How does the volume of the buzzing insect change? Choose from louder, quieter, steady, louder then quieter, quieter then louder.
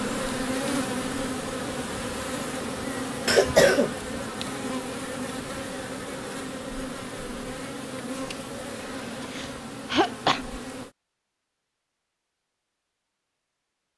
quieter.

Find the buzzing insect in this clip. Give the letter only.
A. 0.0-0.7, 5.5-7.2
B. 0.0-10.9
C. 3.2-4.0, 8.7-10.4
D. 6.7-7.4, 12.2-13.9
B.